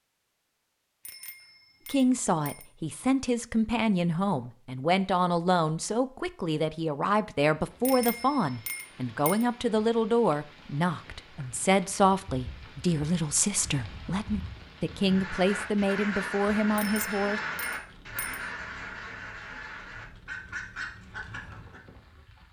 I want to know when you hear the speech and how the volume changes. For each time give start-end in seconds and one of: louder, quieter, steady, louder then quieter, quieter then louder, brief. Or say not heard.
1.9-17.4 steady.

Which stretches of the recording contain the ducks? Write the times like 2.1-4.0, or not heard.
15.0-21.8.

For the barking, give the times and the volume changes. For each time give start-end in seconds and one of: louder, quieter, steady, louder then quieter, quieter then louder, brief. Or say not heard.
not heard.